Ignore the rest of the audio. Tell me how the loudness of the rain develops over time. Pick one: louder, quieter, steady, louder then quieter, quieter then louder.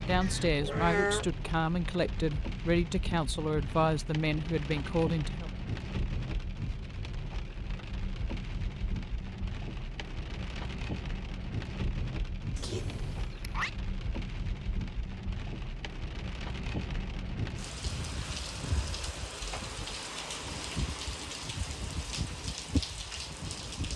steady.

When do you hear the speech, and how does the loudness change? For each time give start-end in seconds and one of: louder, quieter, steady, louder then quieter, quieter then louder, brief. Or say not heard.
0.1-5.5 steady.